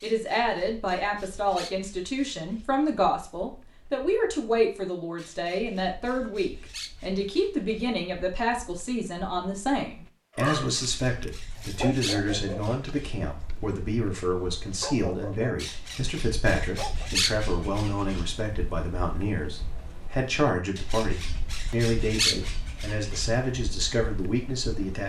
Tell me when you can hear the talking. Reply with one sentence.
The talking can be heard from 0.0 to 25.0 s.